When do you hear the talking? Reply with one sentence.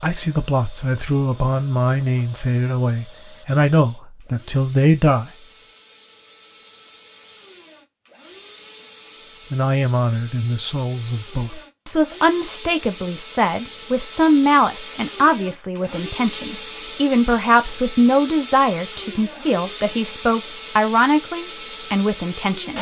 You can hear the talking from 0.0 to 5.3 s and from 9.5 to 22.7 s.